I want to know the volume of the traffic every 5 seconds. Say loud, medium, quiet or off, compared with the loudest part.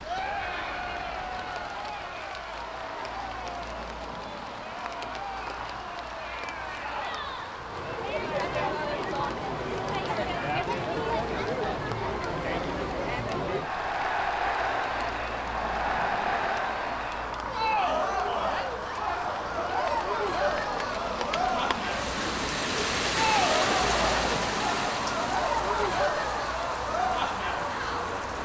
medium, medium, medium, loud, loud, loud.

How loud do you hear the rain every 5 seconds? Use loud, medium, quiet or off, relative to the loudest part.
quiet, quiet, quiet, quiet, loud, medium.